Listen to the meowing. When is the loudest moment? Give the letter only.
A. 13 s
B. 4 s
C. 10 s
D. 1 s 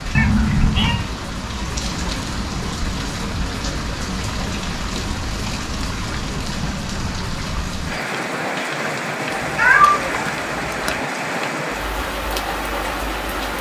C.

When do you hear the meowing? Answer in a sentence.
The meowing can be heard from 0.1 to 1.1 s and from 9.4 to 11.0 s.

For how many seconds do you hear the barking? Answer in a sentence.
You can't hear the barking here.